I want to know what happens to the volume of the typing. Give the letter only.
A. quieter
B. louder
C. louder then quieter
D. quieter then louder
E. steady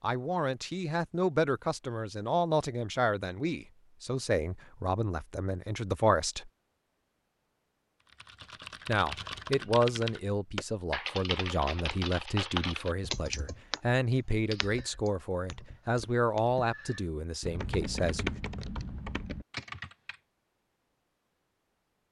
D.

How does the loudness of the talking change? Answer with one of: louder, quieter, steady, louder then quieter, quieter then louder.
steady.